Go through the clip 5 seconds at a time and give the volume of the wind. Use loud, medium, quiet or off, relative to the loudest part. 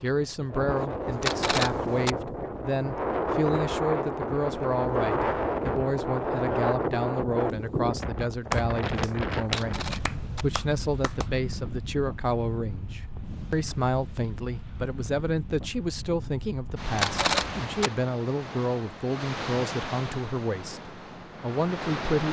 loud, loud, medium, medium, medium.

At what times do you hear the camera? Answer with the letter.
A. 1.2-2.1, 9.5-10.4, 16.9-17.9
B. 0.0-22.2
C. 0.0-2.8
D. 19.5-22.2
A.